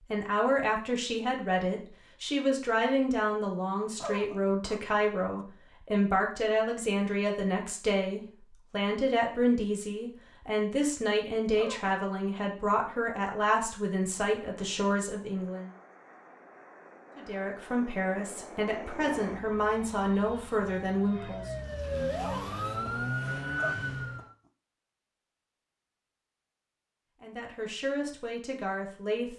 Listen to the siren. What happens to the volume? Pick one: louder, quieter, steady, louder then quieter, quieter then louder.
louder.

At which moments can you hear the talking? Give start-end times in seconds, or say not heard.
0.1-15.7, 17.1-21.5, 27.2-29.3.